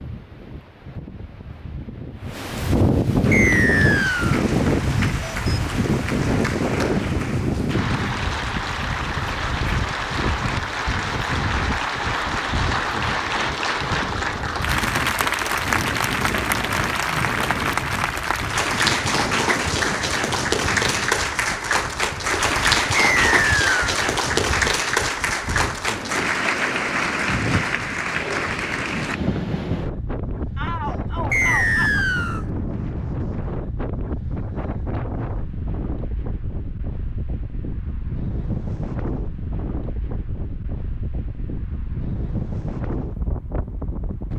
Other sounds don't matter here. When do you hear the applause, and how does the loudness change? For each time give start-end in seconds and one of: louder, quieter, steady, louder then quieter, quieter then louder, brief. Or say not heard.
3.2-29.2 louder.